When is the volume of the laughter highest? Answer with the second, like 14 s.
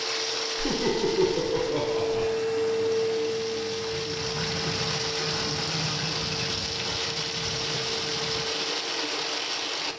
1 s.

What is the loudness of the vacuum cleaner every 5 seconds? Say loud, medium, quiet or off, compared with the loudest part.
loud, medium.